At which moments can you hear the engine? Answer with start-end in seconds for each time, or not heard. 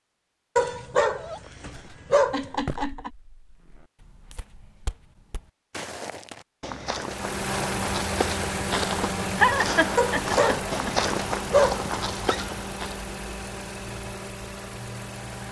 7.0-15.4.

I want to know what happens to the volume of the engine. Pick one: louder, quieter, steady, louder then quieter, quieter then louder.
quieter.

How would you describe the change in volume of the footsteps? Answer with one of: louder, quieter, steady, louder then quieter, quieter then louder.
louder.